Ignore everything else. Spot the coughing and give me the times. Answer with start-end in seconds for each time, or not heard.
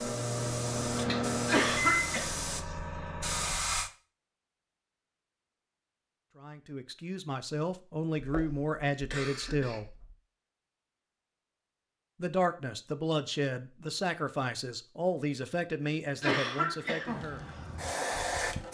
1.4-2.2, 8.2-10.1, 16.2-17.2.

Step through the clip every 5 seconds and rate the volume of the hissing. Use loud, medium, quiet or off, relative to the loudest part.
loud, off, off, loud.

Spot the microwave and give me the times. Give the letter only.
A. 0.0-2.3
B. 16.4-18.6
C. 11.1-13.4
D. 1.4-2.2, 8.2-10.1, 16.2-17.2
A.